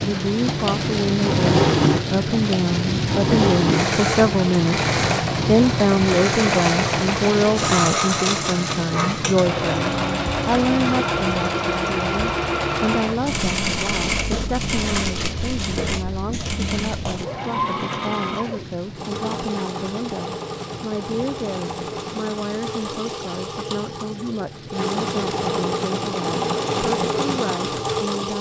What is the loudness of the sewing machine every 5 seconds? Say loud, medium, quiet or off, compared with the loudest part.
loud, loud, loud, medium, medium, loud.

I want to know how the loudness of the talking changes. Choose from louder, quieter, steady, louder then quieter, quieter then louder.
quieter.